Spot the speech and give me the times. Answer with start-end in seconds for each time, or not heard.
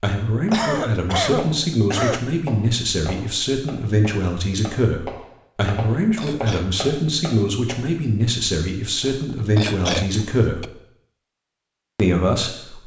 0.0-10.7, 11.9-12.8.